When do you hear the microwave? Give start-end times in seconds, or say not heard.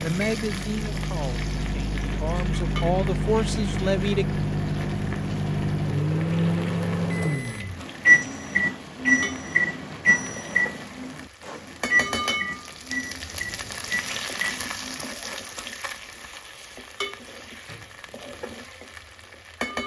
0.0-15.4.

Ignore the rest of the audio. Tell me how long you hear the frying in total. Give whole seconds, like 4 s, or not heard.
20 s.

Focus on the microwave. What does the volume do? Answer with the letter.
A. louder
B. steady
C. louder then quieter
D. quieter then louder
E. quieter
C.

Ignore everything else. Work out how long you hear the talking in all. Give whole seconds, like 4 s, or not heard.
4 s.